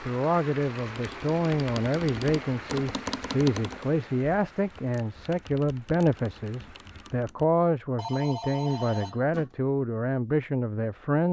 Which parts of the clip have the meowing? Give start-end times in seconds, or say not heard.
not heard.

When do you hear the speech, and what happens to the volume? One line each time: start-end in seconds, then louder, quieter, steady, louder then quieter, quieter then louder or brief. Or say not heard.
0.0-11.2 steady.